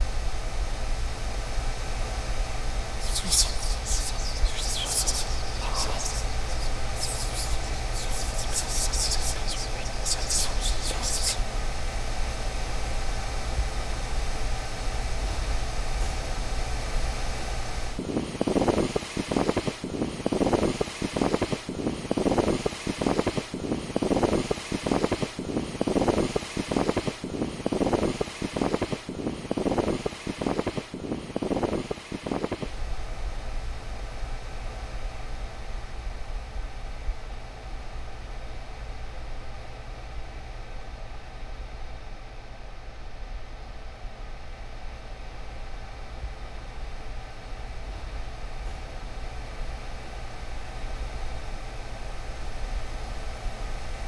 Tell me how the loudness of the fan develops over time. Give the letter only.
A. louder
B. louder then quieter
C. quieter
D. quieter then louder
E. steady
B.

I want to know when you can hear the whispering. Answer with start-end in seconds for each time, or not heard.
3.0-11.4.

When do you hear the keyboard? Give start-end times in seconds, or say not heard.
not heard.